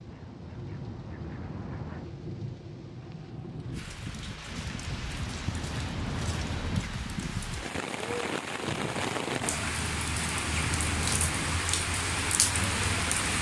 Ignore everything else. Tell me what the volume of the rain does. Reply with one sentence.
The loudness of the rain goes up.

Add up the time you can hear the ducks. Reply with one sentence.
The ducks can be heard for 7 seconds in total.